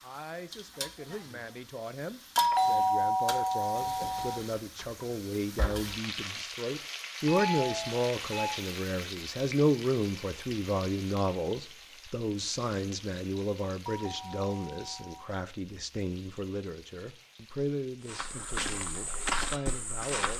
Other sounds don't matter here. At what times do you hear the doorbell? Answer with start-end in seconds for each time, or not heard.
2.4-4.4, 7.2-8.6, 13.8-15.3.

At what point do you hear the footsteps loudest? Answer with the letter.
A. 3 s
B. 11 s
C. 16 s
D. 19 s
D.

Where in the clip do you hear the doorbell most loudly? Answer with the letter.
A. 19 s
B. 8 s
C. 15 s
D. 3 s
D.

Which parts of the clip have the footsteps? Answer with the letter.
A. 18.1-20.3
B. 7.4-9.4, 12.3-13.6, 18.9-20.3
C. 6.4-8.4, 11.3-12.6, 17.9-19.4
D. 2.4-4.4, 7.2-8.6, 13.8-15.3
A.